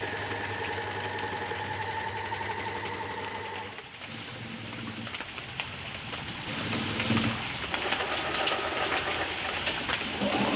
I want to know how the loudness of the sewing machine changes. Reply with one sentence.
The volume of the sewing machine goes down, then up.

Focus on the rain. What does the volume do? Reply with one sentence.
The loudness of the rain goes up.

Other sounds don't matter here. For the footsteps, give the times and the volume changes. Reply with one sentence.
You can't hear the footsteps here.